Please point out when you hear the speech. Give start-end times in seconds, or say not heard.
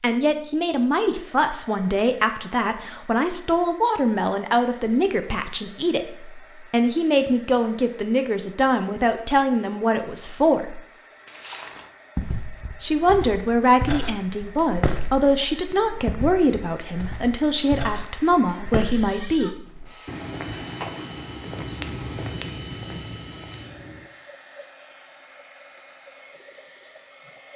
0.0-10.8, 12.8-19.5.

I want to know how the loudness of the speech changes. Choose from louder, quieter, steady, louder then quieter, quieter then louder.
steady.